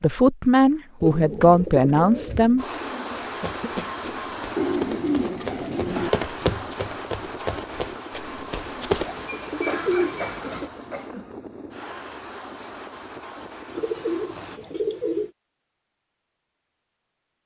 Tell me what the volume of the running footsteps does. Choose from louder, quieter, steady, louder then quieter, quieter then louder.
louder then quieter.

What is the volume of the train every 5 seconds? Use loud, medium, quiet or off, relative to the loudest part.
loud, loud, medium, off.